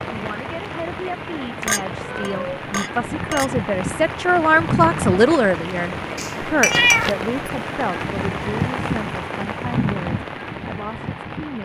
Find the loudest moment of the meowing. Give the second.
7 s.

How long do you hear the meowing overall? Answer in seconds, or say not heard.
2 s.